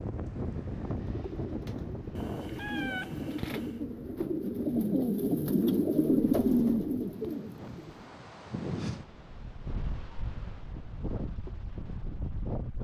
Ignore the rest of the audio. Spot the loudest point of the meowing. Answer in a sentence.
The loudest moment of the meowing is at 3 seconds.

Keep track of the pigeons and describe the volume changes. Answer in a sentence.
The loudness of the pigeons goes up.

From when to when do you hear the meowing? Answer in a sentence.
You can hear the meowing from 2.1 to 3.9 s and from 9.6 to 10.5 s.